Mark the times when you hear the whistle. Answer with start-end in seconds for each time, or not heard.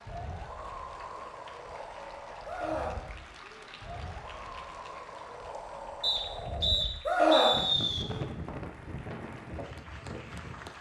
6.0-8.1.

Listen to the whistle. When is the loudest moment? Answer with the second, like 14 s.
8 s.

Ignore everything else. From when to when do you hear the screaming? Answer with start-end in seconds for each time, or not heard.
2.5-3.6, 7.0-8.2.